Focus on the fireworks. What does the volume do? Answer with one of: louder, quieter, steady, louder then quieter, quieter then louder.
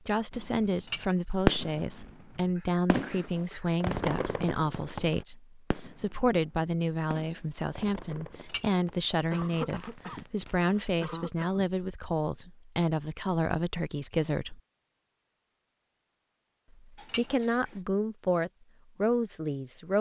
quieter.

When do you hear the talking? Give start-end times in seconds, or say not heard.
0.1-14.6, 16.8-19.9.